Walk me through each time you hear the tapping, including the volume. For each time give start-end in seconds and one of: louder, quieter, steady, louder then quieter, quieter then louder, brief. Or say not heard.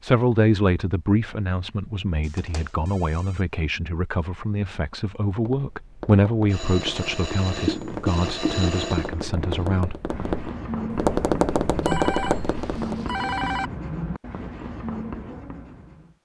5.2-13.1 louder.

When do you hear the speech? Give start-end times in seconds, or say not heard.
0.0-10.1.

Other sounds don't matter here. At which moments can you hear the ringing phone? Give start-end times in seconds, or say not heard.
2.2-3.4, 6.5-9.1, 11.8-13.7.